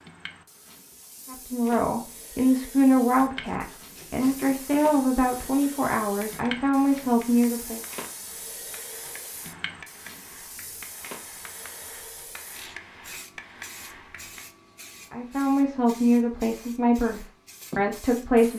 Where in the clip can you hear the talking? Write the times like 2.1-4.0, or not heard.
1.2-7.8, 15.1-18.5.